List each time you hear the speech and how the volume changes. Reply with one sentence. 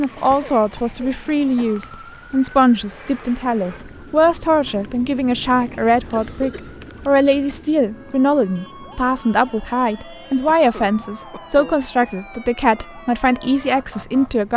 You can hear the speech from 0.0 to 14.5 s, at a steady volume.